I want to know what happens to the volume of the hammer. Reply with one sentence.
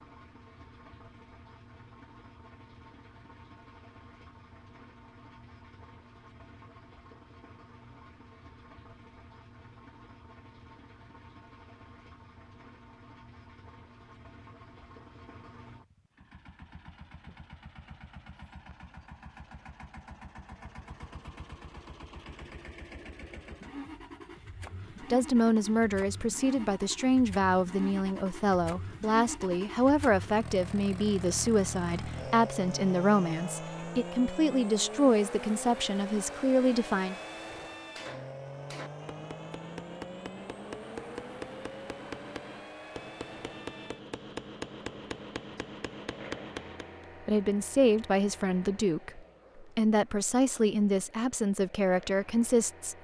The volume of the hammer goes up.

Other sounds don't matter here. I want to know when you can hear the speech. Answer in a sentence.
You can hear the speech from 25.0 to 37.1 s and from 47.2 to 52.9 s.